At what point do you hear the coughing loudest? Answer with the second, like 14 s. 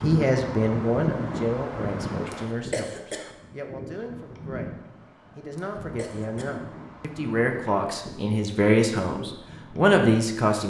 3 s.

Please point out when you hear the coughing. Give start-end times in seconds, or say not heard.
2.3-3.3, 5.5-6.6.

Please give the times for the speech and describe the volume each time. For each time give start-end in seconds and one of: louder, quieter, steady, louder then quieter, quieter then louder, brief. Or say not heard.
0.0-4.8 quieter
5.3-10.6 louder.